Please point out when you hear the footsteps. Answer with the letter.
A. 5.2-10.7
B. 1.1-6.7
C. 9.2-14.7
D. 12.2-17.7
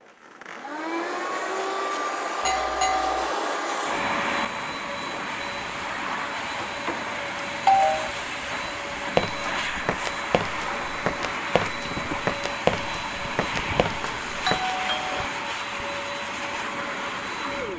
C.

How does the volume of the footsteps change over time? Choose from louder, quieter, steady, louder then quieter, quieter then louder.
louder then quieter.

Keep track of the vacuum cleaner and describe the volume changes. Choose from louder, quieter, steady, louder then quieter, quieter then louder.
steady.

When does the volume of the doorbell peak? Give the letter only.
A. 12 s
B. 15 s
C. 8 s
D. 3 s
C.